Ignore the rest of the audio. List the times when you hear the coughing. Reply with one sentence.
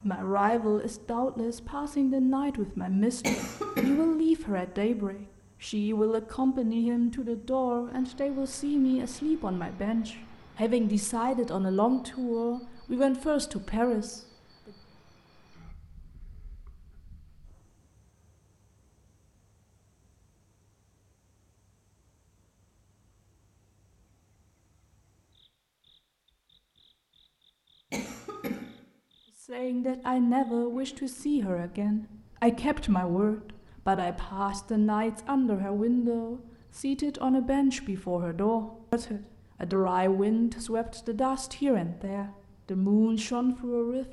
You can hear the coughing from 3.2 to 4.0 s and from 27.9 to 28.6 s.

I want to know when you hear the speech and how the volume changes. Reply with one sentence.
You can hear the speech from 0.0 to 14.7 s, at a steady volume; and from 29.4 to 44.0 s, at a steady volume.